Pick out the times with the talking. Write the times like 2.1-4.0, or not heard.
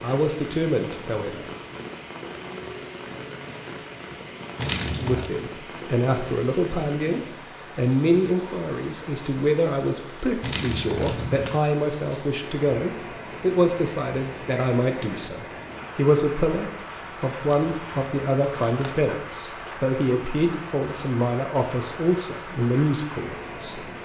0.0-1.4, 5.0-23.9.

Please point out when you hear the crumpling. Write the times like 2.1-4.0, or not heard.
4.5-5.3, 10.4-11.6, 17.4-19.3.